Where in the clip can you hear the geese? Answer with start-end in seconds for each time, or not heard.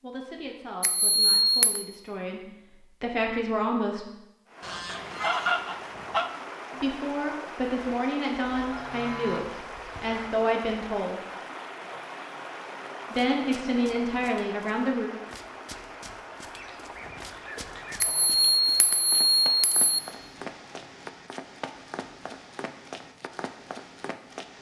4.6-6.3, 8.5-10.3, 16.6-18.3.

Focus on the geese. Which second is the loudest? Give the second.
5 s.